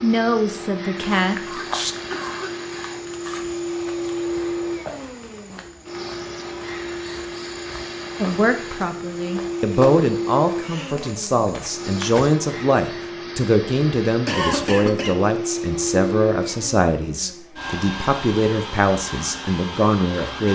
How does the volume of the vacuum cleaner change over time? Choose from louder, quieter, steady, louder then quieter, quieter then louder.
steady.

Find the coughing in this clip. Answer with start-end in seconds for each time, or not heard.
1.4-2.5, 10.6-11.2, 14.2-15.2.